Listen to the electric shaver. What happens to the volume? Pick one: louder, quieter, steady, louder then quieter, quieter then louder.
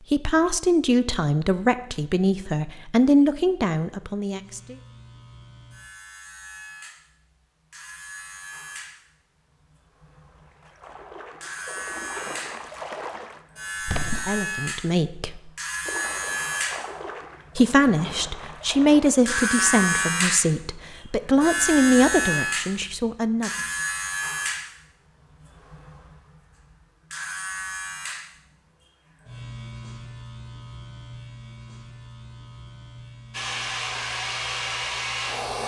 louder then quieter.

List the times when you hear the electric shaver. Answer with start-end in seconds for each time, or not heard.
4.3-35.6.